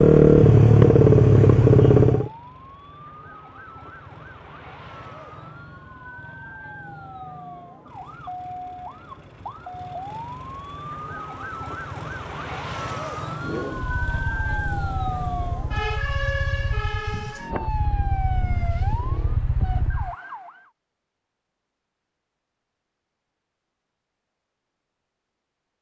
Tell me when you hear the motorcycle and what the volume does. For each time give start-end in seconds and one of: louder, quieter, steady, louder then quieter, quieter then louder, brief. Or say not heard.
0.0-2.3 brief
13.4-20.1 louder.